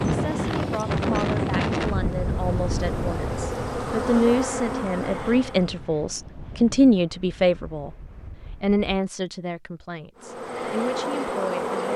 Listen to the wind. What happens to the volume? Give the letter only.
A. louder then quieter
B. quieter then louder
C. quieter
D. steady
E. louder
C.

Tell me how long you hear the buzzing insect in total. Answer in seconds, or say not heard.
7 s.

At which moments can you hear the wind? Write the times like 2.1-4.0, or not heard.
0.0-8.8.